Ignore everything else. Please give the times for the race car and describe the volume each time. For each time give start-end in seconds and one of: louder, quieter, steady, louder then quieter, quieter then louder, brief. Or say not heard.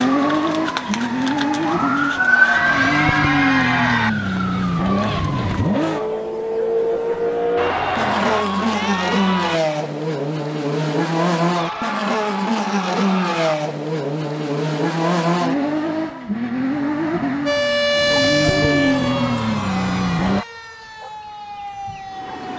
0.0-20.4 steady.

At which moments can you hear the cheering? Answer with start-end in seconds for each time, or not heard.
2.1-4.1, 7.5-9.6, 11.6-13.6, 18.4-20.4.